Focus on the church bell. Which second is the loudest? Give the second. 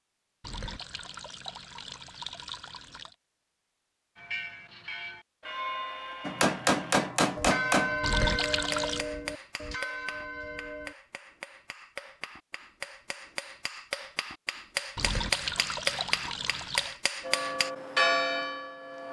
18 s.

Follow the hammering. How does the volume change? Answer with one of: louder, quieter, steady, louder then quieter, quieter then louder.
quieter then louder.